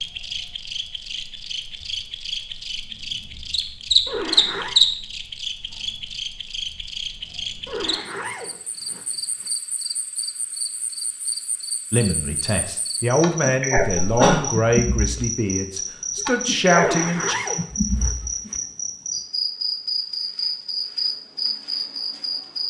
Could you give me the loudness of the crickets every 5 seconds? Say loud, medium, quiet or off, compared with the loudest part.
loud, medium, medium, loud, loud.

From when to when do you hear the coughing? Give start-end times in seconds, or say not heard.
13.8-14.4.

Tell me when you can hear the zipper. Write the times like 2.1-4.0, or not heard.
4.0-4.8, 7.7-9.5, 16.8-18.6.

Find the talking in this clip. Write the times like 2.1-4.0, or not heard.
11.9-17.4.